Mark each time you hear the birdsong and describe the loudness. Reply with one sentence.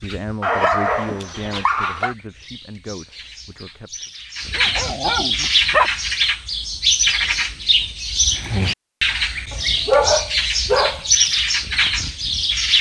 The birdsong can be heard from 0.0 to 12.7 s, getting louder.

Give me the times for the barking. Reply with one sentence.
The barking can be heard from 0.4 to 2.1 s, from 4.5 to 5.9 s and from 9.5 to 11.0 s.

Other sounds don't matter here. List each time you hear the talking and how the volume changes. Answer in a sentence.
The talking can be heard from 0.0 to 4.1 s, getting quieter.